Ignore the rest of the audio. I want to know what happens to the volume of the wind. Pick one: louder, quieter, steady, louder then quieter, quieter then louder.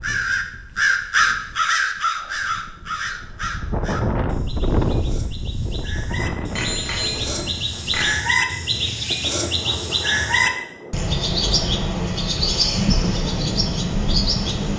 louder then quieter.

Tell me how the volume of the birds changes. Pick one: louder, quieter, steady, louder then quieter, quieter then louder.
quieter then louder.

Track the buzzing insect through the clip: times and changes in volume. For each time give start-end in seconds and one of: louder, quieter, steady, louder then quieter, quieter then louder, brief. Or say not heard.
not heard.